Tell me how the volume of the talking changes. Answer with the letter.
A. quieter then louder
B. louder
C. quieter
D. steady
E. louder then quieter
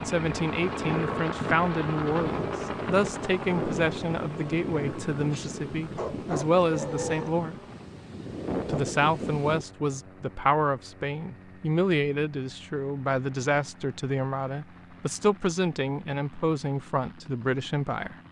D.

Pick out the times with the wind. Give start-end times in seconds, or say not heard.
0.1-9.7.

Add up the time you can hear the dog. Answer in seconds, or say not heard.
2 s.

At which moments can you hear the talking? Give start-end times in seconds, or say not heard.
0.0-7.5, 8.7-18.1.